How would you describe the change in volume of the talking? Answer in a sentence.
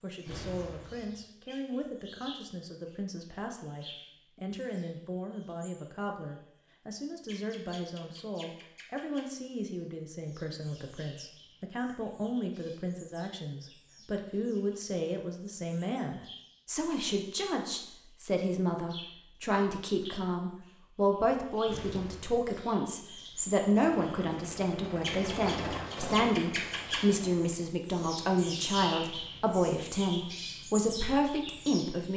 The volume of the talking goes up.